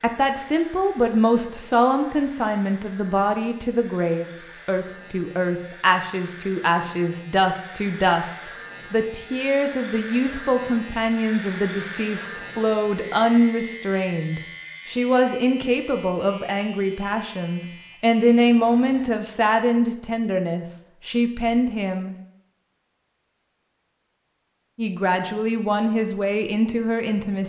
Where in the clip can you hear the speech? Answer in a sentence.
You can hear the speech from 0.0 to 22.1 s and from 24.8 to 27.4 s.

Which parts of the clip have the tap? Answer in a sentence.
You can't hear the tap here.